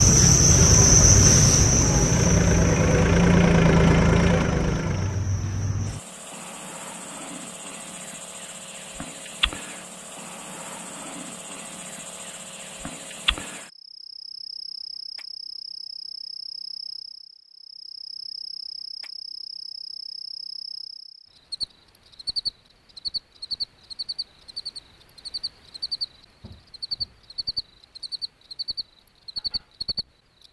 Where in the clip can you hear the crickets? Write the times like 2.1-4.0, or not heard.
0.0-30.4.